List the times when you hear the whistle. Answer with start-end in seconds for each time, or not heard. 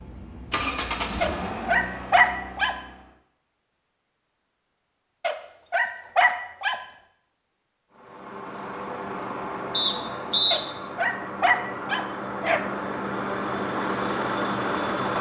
9.7-10.6.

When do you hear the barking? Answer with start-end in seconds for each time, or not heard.
1.2-2.8, 5.2-6.8, 10.5-12.6.